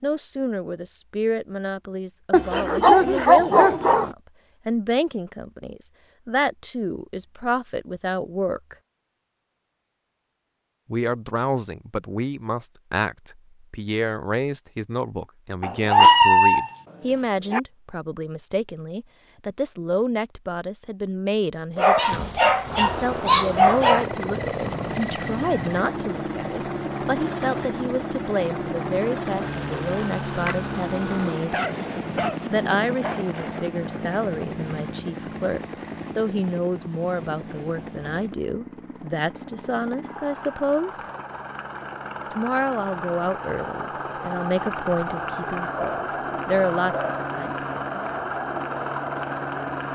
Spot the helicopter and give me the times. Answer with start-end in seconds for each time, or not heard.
22.6-49.8.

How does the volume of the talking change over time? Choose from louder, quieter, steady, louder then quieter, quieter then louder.
steady.